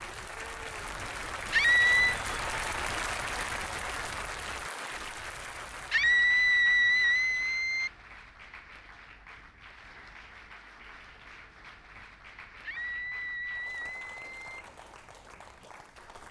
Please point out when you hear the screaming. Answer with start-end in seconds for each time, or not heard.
1.5-2.1, 5.9-7.9, 12.6-14.7.